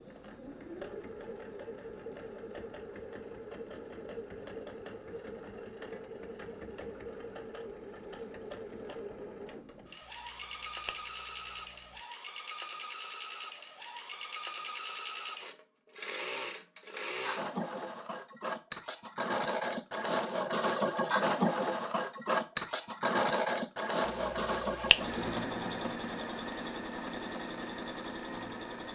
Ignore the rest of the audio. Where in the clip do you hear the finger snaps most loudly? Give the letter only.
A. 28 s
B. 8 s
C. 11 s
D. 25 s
D.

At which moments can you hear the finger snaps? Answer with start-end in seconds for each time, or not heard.
10.0-12.0, 24.1-25.2.